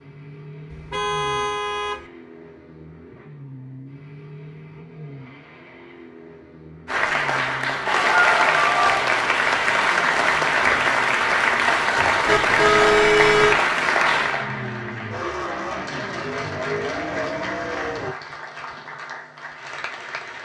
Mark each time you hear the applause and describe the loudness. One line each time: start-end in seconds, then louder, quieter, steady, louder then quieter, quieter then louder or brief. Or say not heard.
6.8-20.4 quieter.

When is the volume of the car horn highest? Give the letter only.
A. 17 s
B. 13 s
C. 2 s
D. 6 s
B.